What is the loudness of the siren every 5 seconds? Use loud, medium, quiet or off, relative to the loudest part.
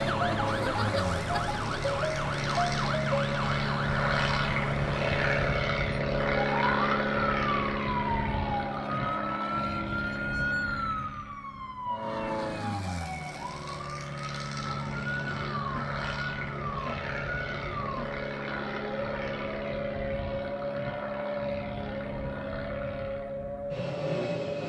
loud, loud, medium, medium, medium.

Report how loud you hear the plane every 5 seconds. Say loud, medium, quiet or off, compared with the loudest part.
loud, loud, medium, medium, medium.